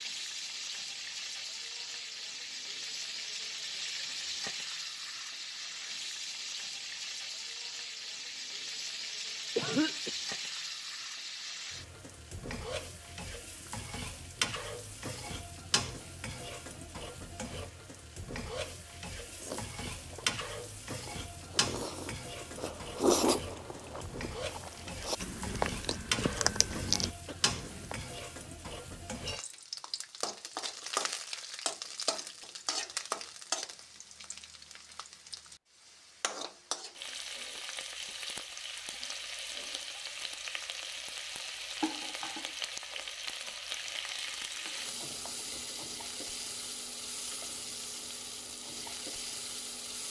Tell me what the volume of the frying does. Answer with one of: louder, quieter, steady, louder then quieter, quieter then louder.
steady.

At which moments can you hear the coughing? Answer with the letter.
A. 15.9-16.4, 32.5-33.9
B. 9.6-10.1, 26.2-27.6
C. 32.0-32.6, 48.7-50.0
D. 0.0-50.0
B.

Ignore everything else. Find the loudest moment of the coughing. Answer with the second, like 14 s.
10 s.